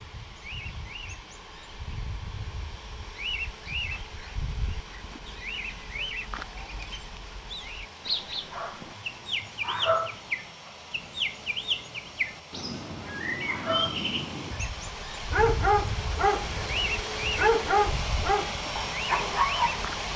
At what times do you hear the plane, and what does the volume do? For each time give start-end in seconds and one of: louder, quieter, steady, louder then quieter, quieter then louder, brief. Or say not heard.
0.0-20.1 louder.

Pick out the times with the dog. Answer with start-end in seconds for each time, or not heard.
8.5-10.9, 13.4-19.9.